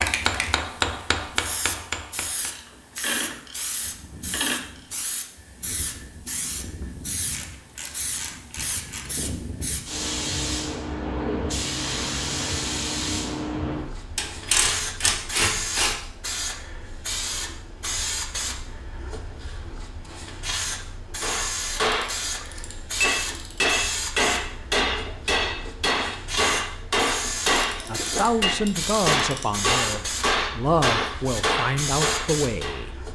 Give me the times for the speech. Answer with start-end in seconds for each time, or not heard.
27.9-33.0.